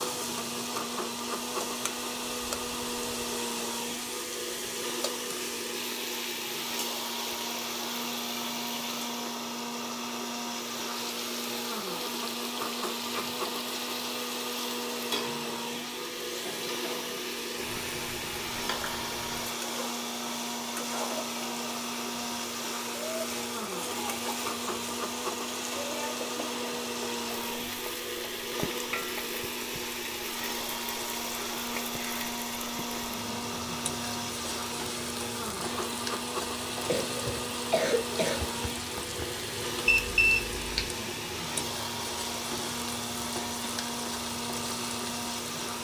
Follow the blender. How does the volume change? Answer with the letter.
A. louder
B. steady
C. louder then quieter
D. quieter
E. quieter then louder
B.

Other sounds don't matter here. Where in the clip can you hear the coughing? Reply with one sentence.
You can hear the coughing from 36.9 to 39.2 s.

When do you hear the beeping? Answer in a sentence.
The beeping can be heard from 39.9 to 40.9 s.